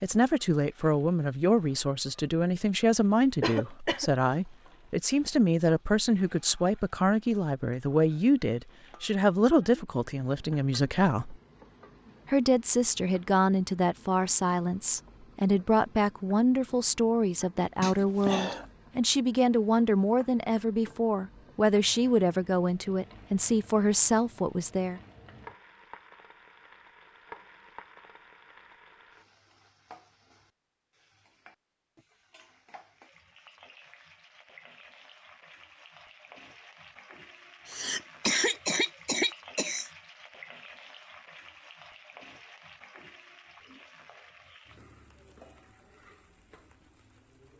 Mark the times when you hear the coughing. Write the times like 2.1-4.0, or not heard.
3.4-4.1, 17.8-18.6, 37.6-39.9.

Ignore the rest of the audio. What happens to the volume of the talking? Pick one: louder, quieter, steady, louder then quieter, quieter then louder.
steady.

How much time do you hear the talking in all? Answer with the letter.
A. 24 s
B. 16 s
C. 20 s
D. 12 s
A.